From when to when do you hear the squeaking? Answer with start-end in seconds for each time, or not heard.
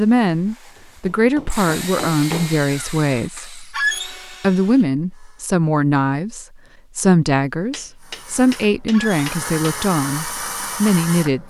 3.7-4.2, 8.9-9.3.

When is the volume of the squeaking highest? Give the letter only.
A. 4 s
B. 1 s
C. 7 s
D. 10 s
A.